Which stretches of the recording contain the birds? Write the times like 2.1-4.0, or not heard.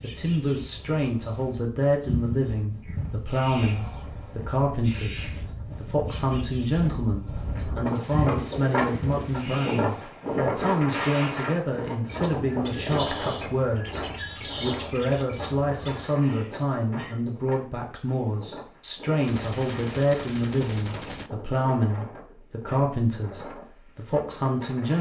0.0-16.1.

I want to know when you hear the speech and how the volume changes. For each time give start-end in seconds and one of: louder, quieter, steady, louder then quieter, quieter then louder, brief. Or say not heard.
0.0-24.9 steady.